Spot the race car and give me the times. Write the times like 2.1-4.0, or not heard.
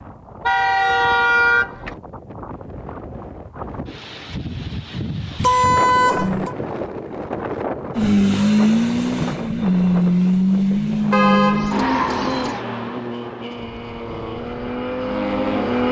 8.0-15.8.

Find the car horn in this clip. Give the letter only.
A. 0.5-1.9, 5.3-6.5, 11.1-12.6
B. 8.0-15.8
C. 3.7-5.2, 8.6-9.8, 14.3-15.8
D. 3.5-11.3
A.